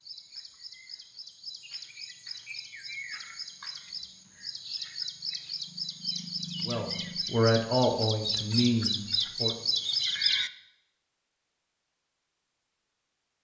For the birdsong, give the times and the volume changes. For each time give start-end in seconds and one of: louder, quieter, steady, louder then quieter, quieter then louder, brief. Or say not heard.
0.0-10.5 louder.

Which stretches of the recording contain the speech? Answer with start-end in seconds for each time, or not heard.
6.7-9.6.